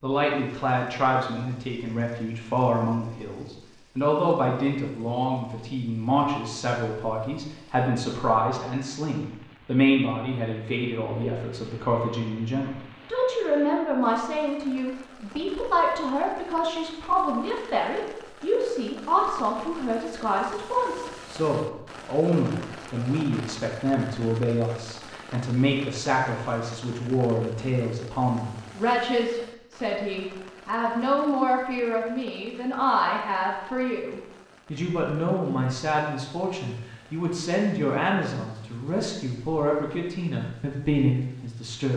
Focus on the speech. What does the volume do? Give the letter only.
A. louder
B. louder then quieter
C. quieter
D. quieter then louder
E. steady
E.